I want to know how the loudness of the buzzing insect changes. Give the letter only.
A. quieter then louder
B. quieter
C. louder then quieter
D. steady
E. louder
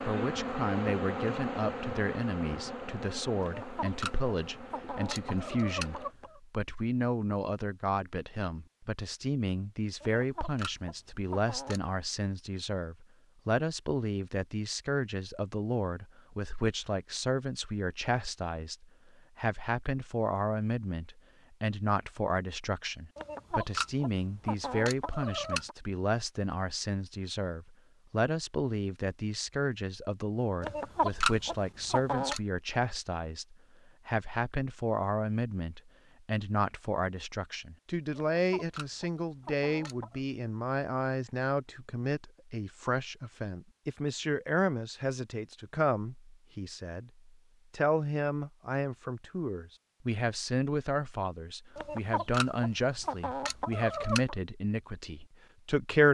B.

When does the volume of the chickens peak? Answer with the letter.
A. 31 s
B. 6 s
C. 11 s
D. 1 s
A.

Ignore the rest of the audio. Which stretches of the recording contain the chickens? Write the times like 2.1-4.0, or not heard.
3.4-6.4, 10.0-11.9, 23.1-25.8, 30.6-32.4, 38.3-40.2, 51.8-54.4.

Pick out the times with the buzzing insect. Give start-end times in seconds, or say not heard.
0.0-6.2.